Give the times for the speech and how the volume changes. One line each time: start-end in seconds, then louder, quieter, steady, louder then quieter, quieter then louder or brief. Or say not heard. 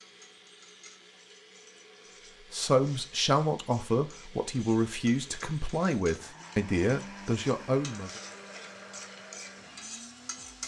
2.5-8.2 steady.